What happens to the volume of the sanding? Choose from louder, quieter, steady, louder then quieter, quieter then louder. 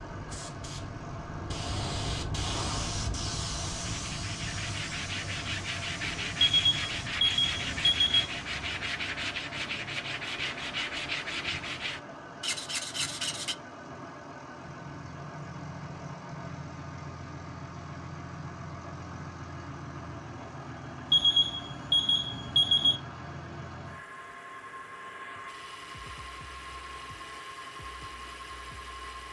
steady.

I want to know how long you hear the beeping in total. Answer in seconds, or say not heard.
4 s.